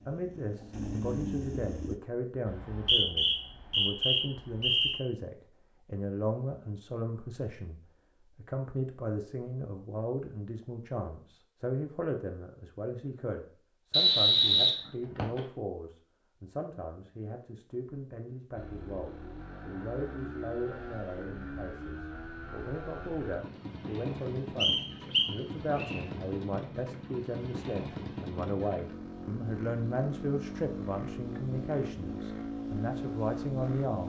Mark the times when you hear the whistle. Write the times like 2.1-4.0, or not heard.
2.5-5.0, 13.9-15.4, 24.6-25.9.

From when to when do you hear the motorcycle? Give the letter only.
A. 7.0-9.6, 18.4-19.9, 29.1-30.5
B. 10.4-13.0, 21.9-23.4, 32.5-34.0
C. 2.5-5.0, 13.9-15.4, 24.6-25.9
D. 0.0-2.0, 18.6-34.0
D.